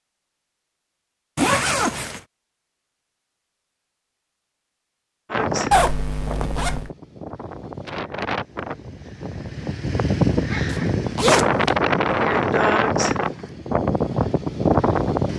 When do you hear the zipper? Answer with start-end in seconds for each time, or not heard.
1.4-2.2, 5.7-6.9, 10.7-11.8.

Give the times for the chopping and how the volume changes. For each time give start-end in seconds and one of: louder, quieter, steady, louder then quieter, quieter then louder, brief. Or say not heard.
not heard.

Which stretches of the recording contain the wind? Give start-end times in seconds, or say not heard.
5.3-15.3.